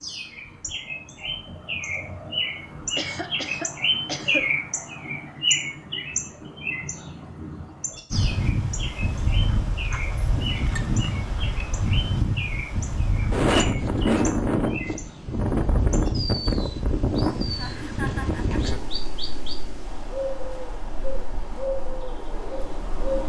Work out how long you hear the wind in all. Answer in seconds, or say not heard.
15 s.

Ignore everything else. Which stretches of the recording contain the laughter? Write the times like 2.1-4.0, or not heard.
2.9-4.5, 17.6-18.8.